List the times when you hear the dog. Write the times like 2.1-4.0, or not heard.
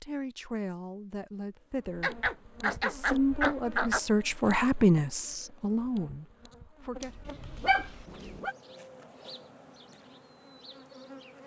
2.0-4.0, 7.0-8.6.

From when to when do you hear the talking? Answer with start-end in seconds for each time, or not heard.
0.0-7.2.